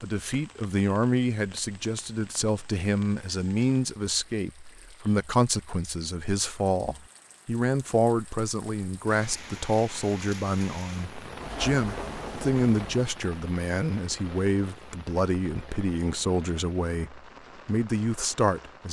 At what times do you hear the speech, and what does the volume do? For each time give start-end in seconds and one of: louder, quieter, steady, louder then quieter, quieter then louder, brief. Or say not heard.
0.0-18.8 steady.